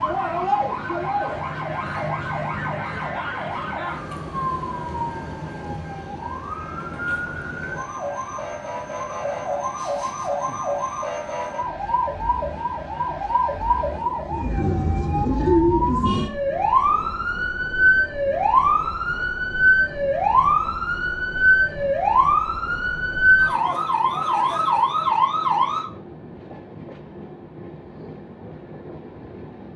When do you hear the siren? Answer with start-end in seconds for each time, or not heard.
0.0-25.9.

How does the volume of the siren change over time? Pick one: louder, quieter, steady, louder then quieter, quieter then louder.
louder.